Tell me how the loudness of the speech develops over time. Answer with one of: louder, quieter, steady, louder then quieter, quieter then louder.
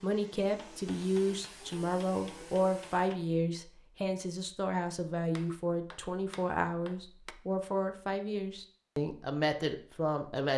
steady.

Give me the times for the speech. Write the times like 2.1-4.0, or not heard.
0.0-10.5.